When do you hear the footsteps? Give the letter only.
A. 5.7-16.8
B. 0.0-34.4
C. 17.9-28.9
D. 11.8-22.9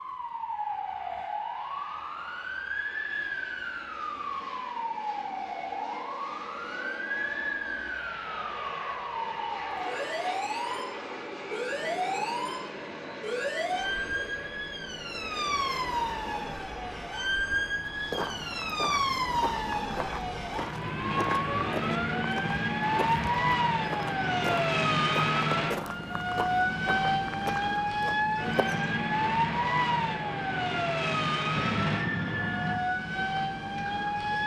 C.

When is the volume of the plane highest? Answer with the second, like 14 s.
32 s.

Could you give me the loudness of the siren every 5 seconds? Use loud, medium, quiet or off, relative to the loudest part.
medium, medium, medium, loud, loud, loud, loud.